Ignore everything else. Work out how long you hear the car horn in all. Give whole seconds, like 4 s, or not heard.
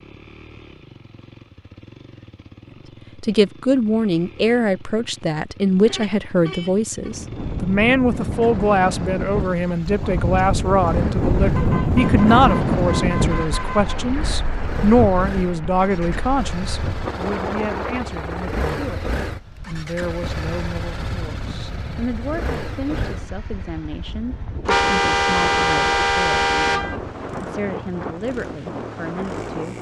6 s.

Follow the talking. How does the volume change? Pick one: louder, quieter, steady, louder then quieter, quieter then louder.
quieter.